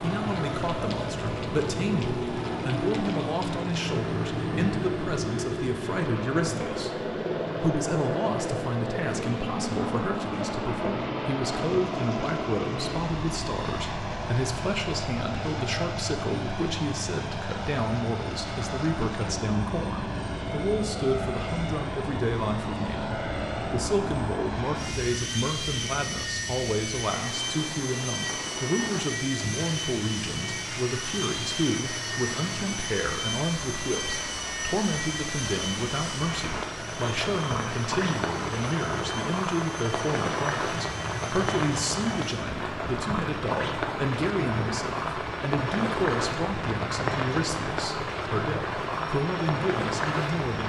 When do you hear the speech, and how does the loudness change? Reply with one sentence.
The speech can be heard from 0.0 to 50.6 s, at a steady volume.